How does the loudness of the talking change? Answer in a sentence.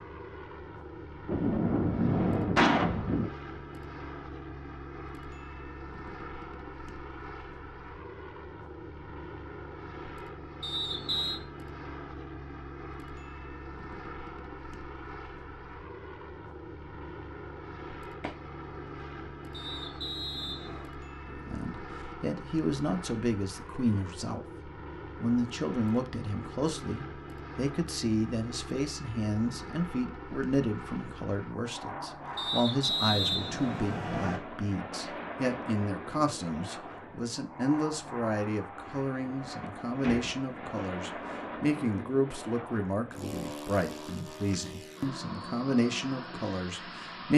The loudness of the talking stays about the same.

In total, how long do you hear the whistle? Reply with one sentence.
You can hear the whistle for 4 seconds altogether.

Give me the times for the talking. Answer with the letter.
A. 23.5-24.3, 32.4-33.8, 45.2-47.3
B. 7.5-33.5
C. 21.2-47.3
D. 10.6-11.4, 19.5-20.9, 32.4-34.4
C.